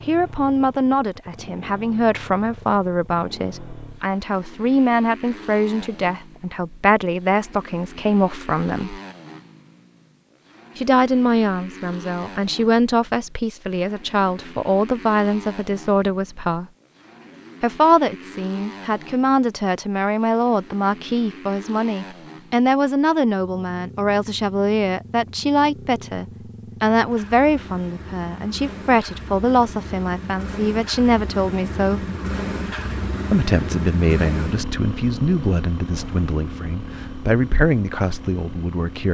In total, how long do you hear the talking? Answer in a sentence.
You can hear the talking for 35 seconds altogether.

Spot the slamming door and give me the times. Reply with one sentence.
You can't hear the slamming door here.